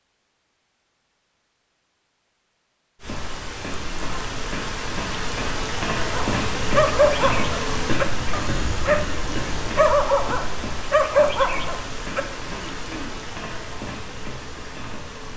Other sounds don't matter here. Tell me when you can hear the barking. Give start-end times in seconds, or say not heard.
6.1-9.1, 9.8-12.2.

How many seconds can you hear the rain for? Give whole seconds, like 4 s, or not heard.
12 s.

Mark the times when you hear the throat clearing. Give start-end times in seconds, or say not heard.
12.1-13.2.